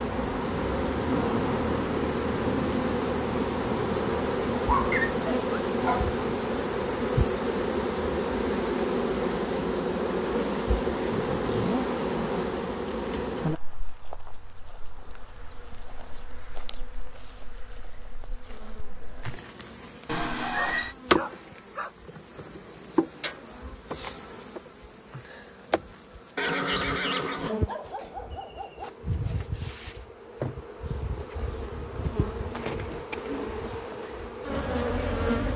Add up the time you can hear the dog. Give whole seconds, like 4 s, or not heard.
4 s.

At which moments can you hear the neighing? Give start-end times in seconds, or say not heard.
4.9-5.6, 20.1-20.9, 26.4-27.5.